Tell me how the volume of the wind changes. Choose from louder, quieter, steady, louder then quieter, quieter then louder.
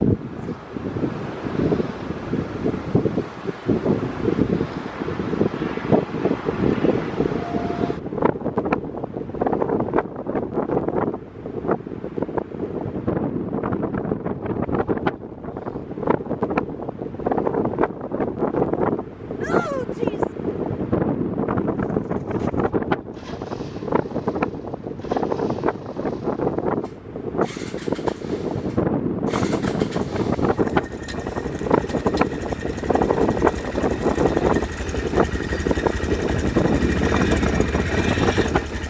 steady.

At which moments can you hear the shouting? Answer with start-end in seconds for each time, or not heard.
19.4-20.4.